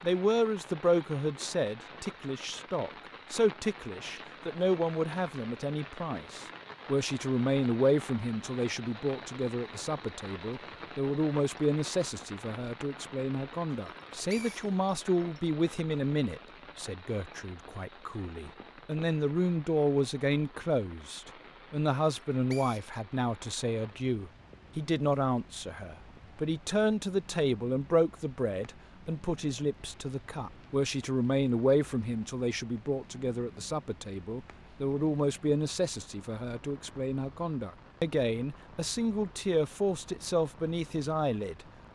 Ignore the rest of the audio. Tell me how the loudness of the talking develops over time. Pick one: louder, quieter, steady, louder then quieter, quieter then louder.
steady.